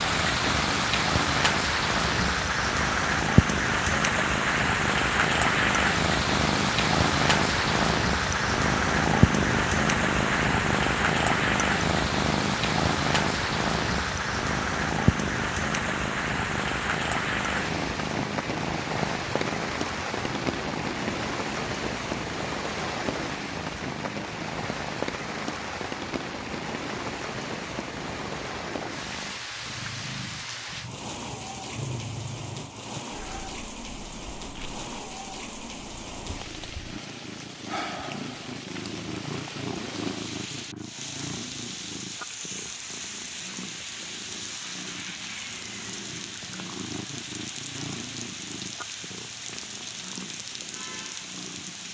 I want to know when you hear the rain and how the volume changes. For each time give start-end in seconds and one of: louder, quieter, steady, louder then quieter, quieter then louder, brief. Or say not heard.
0.0-51.8 quieter.